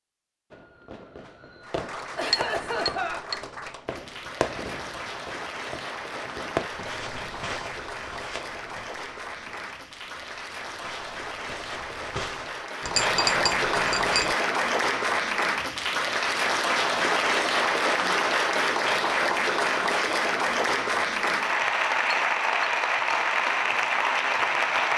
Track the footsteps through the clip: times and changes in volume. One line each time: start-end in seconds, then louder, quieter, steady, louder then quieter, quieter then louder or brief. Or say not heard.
6.6-12.7 quieter then louder.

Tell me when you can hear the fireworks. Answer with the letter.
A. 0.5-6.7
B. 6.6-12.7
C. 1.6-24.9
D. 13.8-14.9
A.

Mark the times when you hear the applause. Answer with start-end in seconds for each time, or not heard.
1.6-24.9.